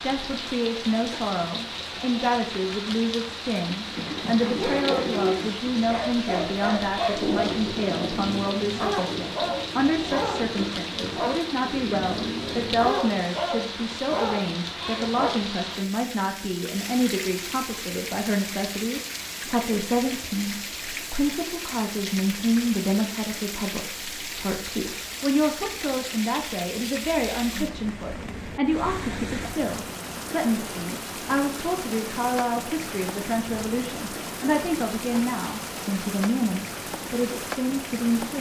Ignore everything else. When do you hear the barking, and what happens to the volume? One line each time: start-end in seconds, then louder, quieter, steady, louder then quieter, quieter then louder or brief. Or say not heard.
4.5-15.4 steady.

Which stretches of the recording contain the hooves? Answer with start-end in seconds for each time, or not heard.
3.9-12.9.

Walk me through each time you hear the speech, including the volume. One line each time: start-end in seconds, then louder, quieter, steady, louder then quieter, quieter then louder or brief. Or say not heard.
0.0-38.3 steady.